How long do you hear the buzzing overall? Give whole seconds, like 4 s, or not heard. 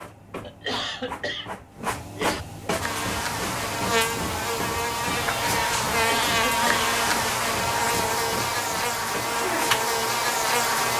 8 s.